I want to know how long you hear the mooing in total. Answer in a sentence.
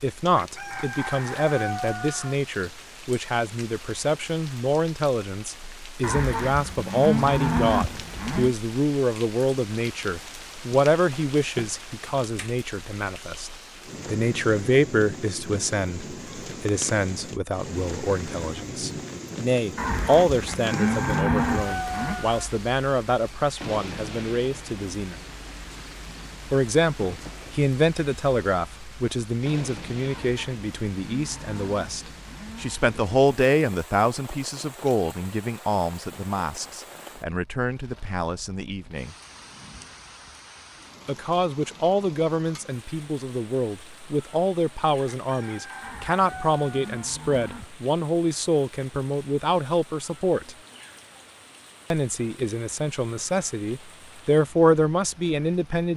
You can hear the mooing for 10 seconds altogether.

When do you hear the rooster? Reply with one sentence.
The rooster can be heard from 0.3 to 2.4 s, from 20.4 to 22.5 s and from 45.0 to 47.1 s.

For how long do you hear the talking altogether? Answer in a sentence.
The talking can be heard for 51 seconds in total.